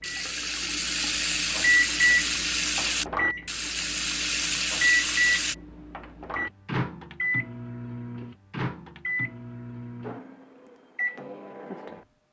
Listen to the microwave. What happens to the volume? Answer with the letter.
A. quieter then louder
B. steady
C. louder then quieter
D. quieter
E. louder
D.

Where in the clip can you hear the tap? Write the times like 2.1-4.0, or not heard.
0.0-5.5.